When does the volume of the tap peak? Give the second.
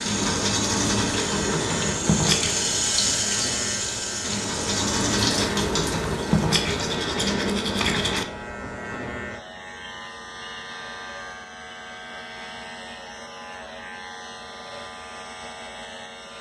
3 s.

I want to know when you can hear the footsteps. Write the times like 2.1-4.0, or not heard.
not heard.